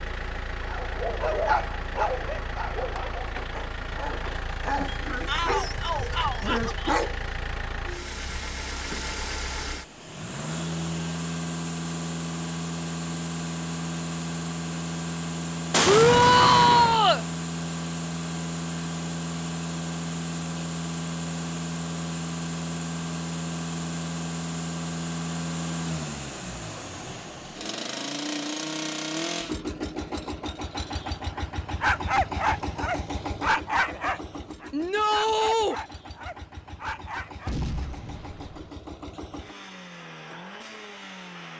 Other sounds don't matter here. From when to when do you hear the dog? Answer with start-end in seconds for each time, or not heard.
0.7-7.2, 31.8-37.5.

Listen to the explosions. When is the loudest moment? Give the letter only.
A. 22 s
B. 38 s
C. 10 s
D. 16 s
D.